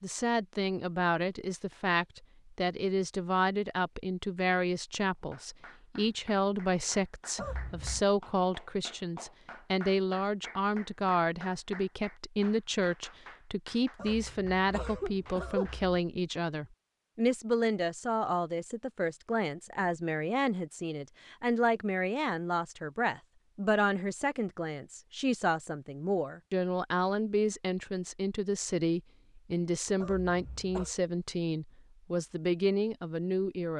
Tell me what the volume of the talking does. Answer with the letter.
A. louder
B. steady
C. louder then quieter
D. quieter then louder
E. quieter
B.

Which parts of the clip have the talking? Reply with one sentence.
You can hear the talking from 0.0 to 33.7 s.